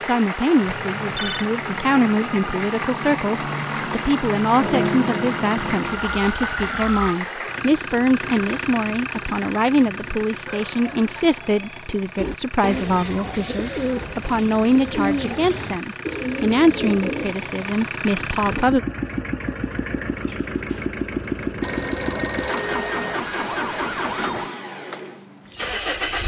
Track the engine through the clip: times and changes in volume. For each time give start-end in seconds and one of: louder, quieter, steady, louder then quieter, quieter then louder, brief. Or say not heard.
0.0-26.2 quieter then louder.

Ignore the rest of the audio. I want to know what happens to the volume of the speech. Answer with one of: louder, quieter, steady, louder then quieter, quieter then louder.
steady.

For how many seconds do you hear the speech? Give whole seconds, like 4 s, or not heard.
19 s.